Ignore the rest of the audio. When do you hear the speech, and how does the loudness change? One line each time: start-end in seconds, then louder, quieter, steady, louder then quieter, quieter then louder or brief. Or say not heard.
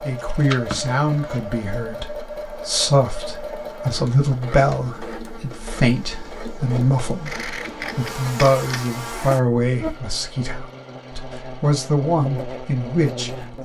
0.1-13.6 steady.